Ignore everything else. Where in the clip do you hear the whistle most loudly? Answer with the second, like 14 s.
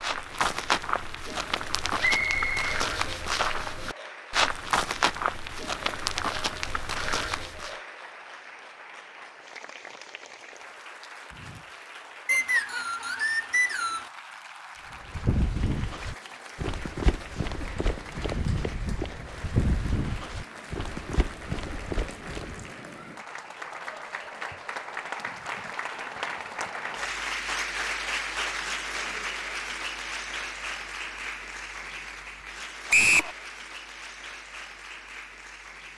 33 s.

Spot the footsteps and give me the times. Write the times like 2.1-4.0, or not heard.
0.0-7.8, 14.9-22.7.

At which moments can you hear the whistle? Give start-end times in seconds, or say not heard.
2.0-2.6, 12.2-14.1, 32.9-33.4.